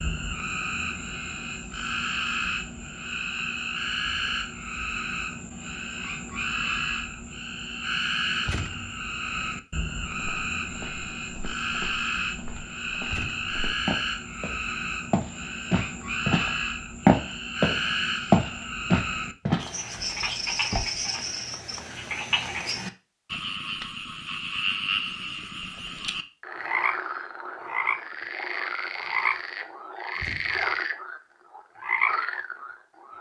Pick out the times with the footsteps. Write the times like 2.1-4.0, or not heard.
10.1-21.0.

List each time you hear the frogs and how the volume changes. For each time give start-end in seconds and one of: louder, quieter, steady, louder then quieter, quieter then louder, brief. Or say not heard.
0.0-33.1 steady.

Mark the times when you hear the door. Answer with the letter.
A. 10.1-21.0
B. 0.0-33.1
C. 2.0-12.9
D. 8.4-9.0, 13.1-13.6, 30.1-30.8
D.